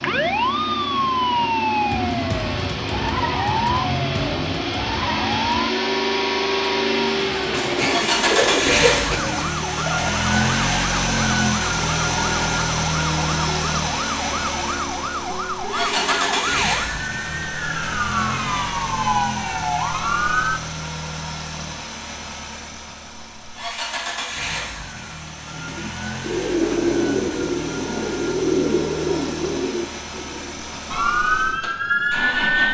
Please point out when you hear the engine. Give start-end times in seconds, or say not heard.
0.0-32.6.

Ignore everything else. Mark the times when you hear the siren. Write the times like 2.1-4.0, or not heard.
0.0-20.6, 30.9-32.6.